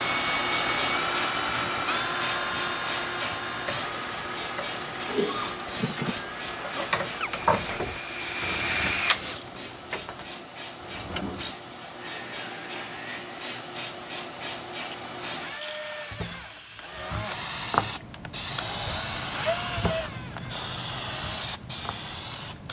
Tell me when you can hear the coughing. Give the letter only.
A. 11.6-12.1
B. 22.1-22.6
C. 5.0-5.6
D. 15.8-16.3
C.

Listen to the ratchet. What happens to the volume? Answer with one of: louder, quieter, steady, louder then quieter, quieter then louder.
louder then quieter.